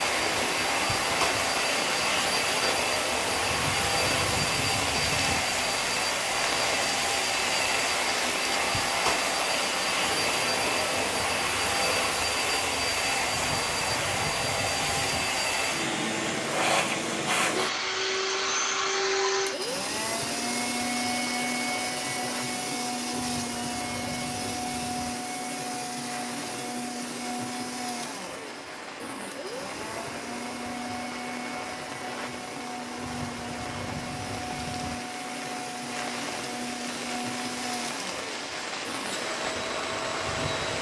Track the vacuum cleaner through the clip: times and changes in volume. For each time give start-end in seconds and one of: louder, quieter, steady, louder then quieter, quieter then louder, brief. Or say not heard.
0.0-40.7 quieter.